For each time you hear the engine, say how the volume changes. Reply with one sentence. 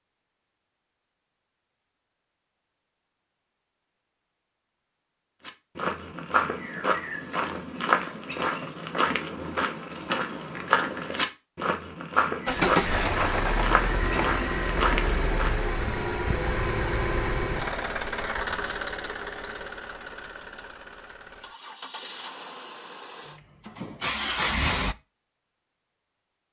The engine can be heard from 12.4 to 24.9 s, getting quieter then louder.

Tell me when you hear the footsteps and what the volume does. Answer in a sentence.
You can hear the footsteps from 5.5 to 15.6 s, at a steady volume.